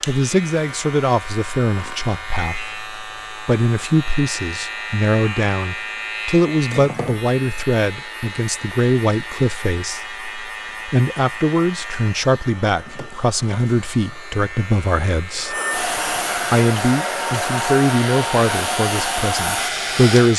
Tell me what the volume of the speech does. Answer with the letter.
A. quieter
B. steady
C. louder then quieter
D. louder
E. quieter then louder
B.